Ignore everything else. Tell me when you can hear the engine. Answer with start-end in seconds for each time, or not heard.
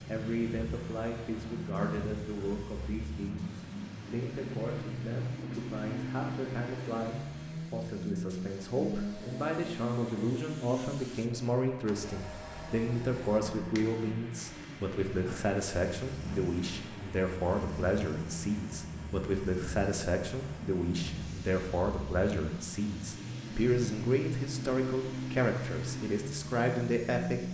0.0-27.4.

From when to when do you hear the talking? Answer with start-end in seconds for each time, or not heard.
0.1-27.4.